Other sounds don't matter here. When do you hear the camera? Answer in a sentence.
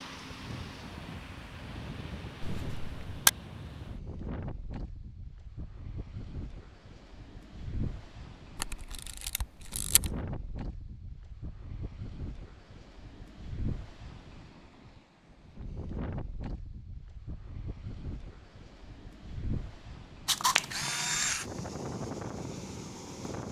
The camera can be heard from 2.4 to 3.3 s, from 8.6 to 10.2 s and from 20.2 to 21.4 s.